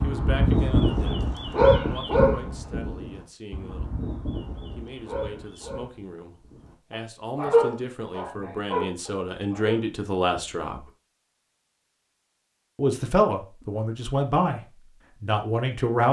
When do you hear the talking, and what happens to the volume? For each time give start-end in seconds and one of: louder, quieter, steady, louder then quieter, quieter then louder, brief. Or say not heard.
0.0-1.2 brief
1.9-4.0 brief
4.8-10.9 louder
12.8-14.6 brief
15.2-16.0 brief.